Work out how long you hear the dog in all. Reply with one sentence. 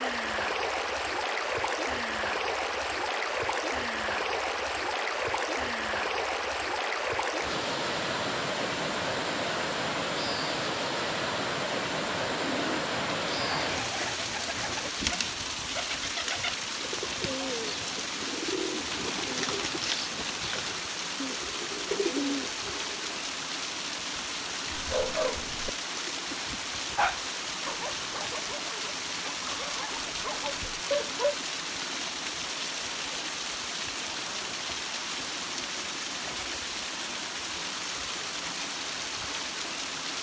You can hear the dog for 7 seconds altogether.